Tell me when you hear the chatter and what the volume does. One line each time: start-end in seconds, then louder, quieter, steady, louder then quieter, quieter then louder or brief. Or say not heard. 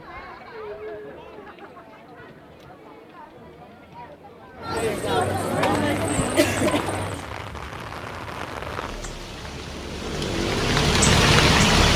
0.0-7.2 quieter then louder.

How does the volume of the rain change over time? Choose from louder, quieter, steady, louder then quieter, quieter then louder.
louder.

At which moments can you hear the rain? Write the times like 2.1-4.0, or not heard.
5.7-11.9.